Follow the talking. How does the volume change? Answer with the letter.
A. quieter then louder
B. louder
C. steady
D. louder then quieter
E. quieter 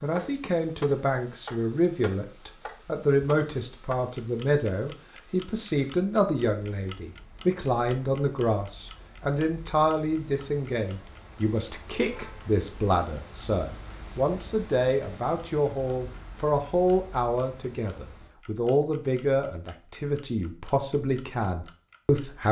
C.